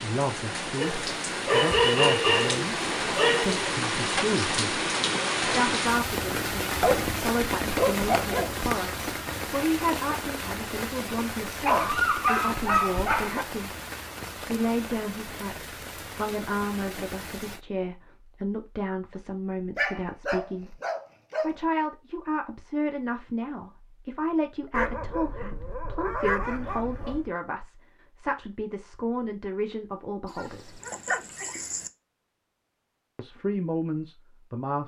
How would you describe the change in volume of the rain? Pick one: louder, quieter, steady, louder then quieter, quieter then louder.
quieter.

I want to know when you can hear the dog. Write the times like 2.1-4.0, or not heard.
0.8-3.6, 6.8-8.6, 11.7-13.4, 19.8-21.6, 24.7-27.3, 30.2-31.9.